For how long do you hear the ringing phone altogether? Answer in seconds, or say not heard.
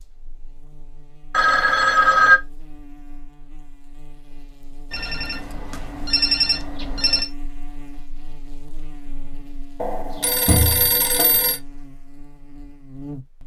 5 s.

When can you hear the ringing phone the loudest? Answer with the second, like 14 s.
2 s.